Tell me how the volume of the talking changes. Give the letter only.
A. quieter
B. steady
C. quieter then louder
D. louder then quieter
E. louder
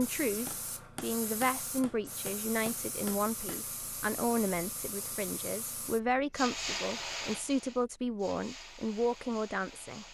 B.